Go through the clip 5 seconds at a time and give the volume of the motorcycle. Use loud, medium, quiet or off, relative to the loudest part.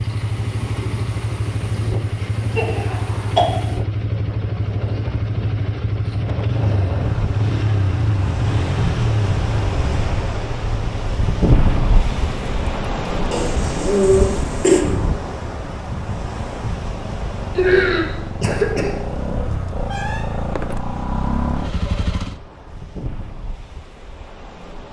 loud, loud, medium, medium, loud.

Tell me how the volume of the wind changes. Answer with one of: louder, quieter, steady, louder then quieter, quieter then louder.
louder then quieter.